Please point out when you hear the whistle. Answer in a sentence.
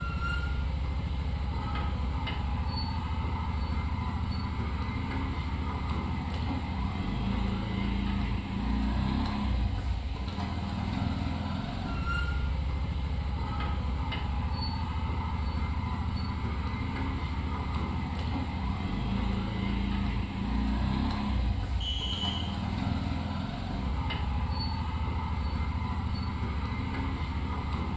The whistle can be heard from 21.8 to 22.6 s.